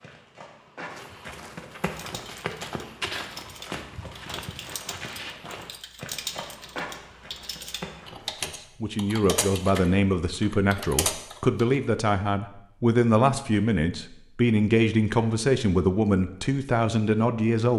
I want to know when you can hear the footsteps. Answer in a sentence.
The footsteps can be heard from 0.0 to 8.5 s.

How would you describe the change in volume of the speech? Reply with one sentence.
The volume of the speech stays about the same.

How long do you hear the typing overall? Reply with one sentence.
You can hear the typing for 10 seconds altogether.